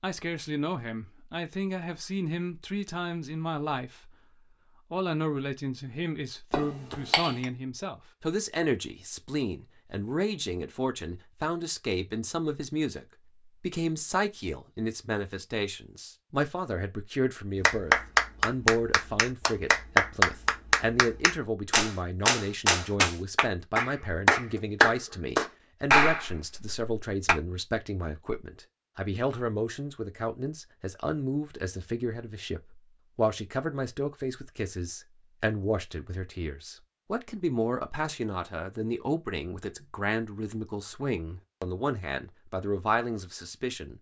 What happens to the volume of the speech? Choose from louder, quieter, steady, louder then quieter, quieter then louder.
steady.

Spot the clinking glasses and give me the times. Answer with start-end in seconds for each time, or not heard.
6.5-7.5.